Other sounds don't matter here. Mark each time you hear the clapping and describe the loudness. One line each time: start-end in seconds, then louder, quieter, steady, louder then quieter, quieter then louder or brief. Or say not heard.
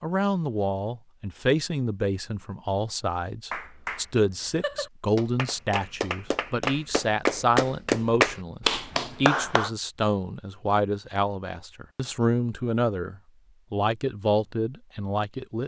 3.5-9.7 louder.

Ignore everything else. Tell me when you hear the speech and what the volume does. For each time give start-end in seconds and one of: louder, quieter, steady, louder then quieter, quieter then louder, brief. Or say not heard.
0.0-15.6 steady.